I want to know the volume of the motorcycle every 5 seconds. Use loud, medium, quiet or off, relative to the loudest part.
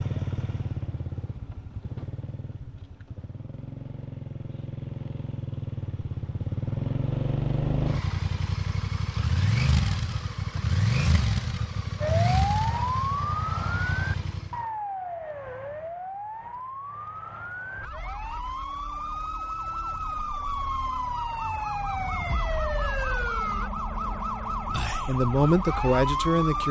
medium, loud, loud, off, off, off.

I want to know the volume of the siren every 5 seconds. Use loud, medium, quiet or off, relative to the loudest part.
off, off, loud, medium, loud, loud.